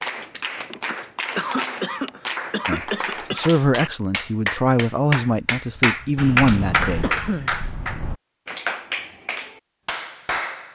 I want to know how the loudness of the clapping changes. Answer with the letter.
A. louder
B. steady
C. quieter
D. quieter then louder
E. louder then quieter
E.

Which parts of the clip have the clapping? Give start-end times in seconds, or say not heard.
0.0-10.6.